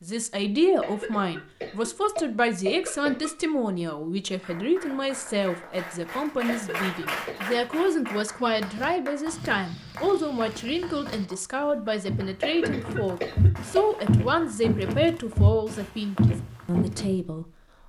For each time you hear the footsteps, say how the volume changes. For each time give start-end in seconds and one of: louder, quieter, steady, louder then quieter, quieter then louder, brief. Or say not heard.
8.3-17.1 louder.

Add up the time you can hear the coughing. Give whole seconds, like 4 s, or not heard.
5 s.